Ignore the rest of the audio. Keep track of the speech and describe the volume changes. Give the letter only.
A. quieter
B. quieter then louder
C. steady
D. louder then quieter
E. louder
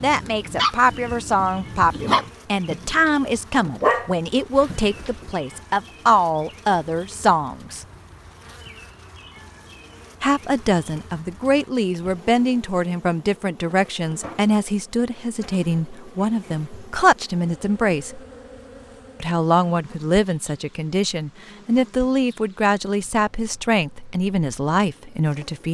C.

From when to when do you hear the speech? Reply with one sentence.
The speech can be heard from 0.0 to 7.8 s, from 10.2 to 18.2 s and from 19.2 to 25.6 s.